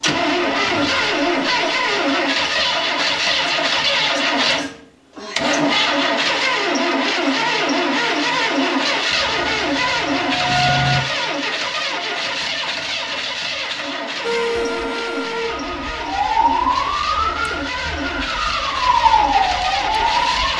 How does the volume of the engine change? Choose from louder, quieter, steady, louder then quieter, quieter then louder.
quieter.